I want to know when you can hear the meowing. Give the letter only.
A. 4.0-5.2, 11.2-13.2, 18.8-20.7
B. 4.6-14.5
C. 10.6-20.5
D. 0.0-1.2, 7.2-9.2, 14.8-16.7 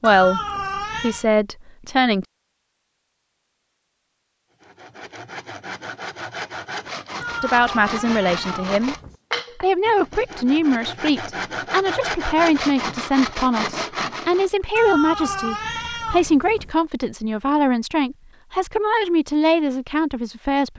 D.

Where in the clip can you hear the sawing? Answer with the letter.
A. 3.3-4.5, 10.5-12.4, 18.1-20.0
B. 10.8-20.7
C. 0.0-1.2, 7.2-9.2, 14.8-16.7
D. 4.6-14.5
D.